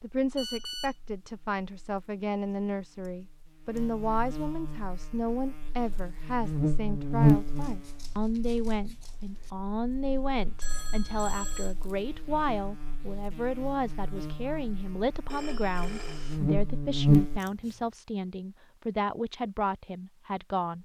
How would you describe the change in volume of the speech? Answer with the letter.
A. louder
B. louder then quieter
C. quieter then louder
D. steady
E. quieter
D.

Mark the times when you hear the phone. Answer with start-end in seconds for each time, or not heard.
0.3-0.9, 10.6-11.8, 15.3-16.4.